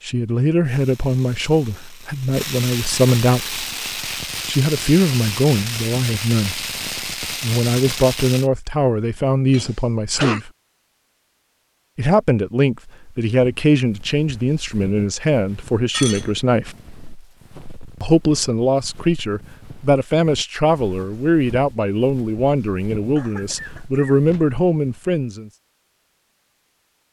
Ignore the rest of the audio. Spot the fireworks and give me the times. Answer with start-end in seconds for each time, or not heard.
0.6-8.5.